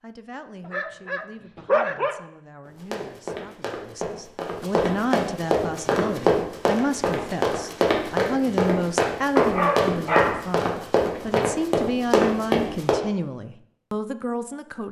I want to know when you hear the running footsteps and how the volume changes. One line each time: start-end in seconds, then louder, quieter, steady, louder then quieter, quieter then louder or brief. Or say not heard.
2.6-12.9 louder.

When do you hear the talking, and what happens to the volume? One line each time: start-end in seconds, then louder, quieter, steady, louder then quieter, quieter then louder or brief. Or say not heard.
0.0-14.8 louder.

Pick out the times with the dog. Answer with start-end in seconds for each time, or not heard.
0.7-2.2, 9.3-11.5.